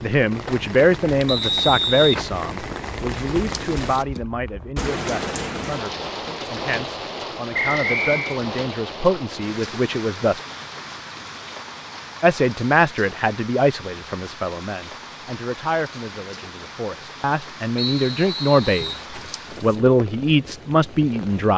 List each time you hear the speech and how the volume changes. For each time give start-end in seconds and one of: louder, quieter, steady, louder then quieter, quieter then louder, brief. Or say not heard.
0.0-10.4 quieter then louder
12.2-18.9 quieter then louder
19.6-21.5 brief.